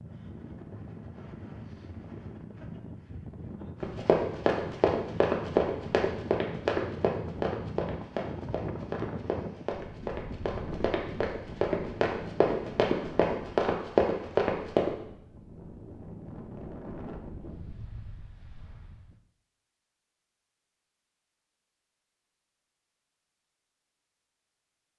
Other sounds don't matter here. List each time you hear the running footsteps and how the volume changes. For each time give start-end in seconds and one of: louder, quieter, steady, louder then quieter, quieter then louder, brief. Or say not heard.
3.8-14.9 quieter then louder.